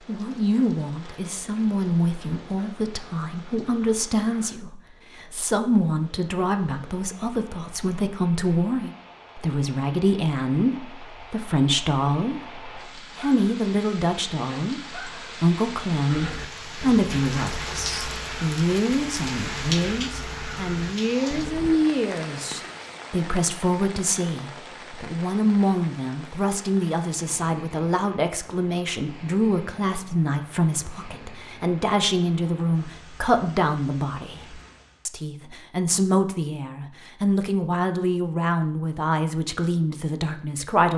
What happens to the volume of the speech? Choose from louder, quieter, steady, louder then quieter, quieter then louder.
steady.